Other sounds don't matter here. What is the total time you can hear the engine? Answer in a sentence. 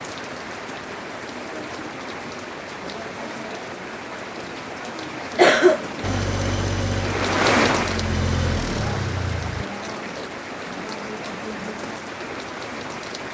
The engine can be heard for 4 seconds in total.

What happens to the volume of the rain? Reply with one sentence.
The loudness of the rain goes up, then down.